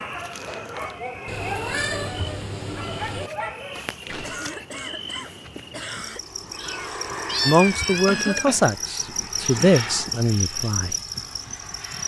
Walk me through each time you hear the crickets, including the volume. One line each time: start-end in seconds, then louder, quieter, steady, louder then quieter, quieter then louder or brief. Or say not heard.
0.0-12.0 louder.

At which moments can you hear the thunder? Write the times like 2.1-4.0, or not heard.
not heard.